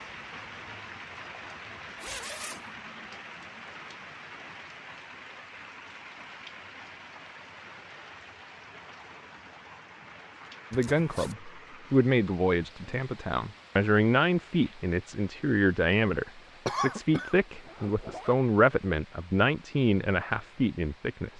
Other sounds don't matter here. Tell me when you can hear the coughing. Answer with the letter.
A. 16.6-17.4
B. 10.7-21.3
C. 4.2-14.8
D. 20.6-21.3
A.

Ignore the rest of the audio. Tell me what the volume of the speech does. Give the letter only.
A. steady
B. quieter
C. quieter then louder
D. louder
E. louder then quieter
A.